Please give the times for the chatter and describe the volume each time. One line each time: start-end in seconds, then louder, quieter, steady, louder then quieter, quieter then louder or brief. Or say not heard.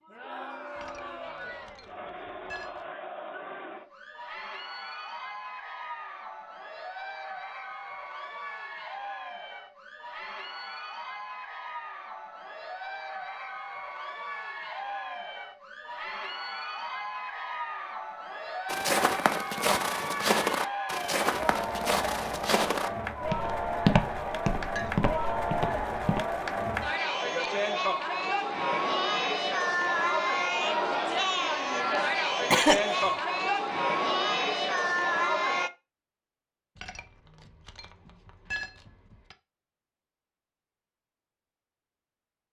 0.0-35.7 louder.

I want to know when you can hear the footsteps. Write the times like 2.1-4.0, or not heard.
18.6-26.2.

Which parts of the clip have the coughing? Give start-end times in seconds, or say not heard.
32.5-33.1.